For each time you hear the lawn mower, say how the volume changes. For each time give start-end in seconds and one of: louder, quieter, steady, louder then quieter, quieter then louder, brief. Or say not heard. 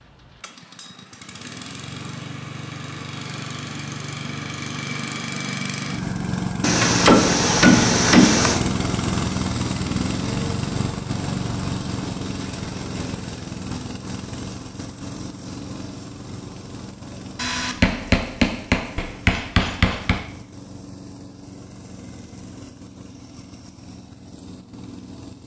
0.0-25.4 louder then quieter.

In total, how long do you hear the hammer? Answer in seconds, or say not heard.
5 s.